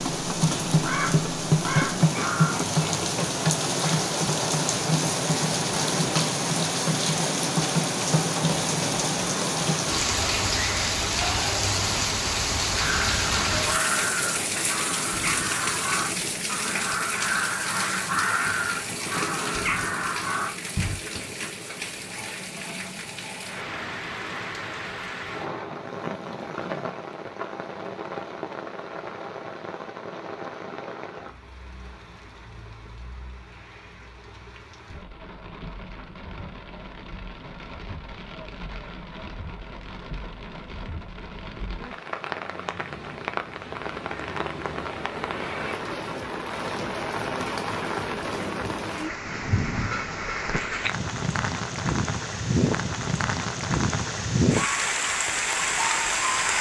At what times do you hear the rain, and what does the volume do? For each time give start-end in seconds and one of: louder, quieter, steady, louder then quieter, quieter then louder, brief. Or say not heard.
0.0-56.5 quieter then louder.